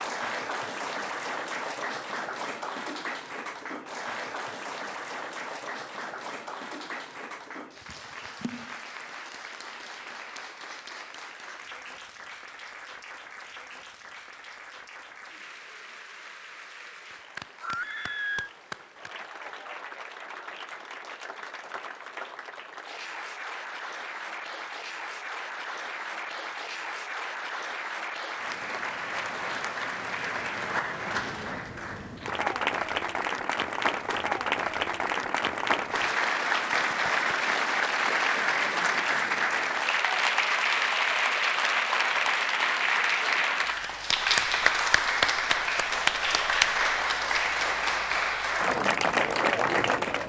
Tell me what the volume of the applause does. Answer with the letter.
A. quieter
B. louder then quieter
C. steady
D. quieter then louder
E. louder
D.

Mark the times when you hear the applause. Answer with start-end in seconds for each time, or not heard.
0.0-50.2.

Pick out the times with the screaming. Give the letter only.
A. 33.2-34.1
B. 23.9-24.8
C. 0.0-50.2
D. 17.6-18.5
D.